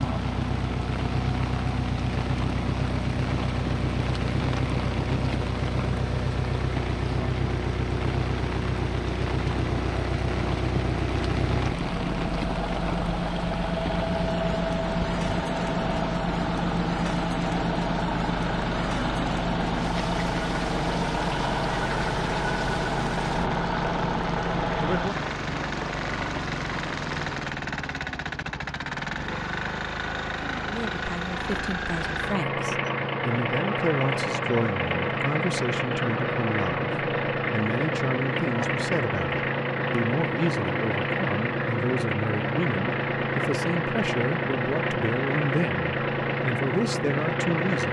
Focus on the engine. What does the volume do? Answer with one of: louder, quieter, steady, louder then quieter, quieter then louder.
steady.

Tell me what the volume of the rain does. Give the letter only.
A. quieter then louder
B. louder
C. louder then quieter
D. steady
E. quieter
D.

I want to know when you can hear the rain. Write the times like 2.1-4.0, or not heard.
0.0-27.6.